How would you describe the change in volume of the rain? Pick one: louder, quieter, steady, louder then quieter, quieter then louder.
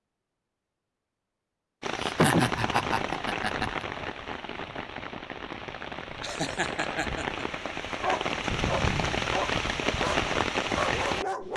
quieter then louder.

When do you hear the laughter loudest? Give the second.
2 s.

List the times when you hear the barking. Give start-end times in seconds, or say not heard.
8.0-11.5.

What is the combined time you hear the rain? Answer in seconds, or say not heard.
10 s.